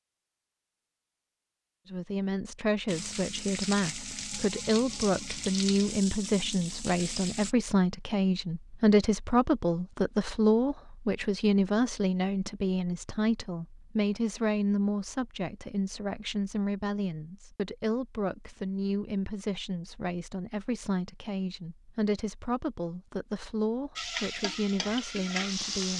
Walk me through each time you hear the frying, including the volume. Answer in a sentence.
The frying can be heard from 2.9 to 7.5 s, at a steady volume; and briefly from 23.9 to 25.9 s.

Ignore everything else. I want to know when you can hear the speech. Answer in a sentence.
You can hear the speech from 1.9 to 25.9 s.